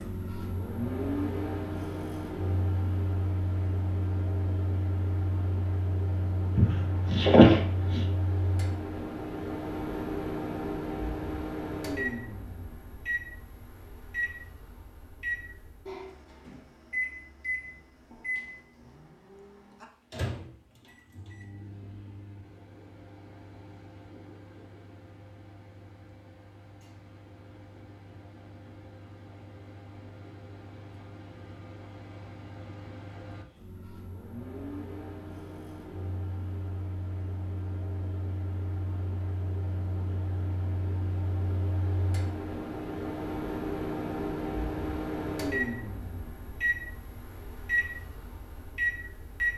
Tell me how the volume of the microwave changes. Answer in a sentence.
The volume of the microwave goes down, then up.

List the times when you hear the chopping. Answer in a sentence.
You can hear the chopping from 6.5 to 8.1 s.